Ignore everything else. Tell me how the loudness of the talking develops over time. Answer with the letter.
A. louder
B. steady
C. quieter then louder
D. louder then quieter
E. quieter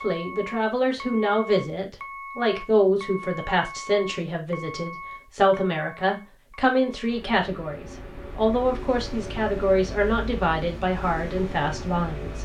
B.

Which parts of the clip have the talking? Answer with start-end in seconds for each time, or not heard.
0.0-12.4.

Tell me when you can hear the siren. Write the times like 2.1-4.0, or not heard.
not heard.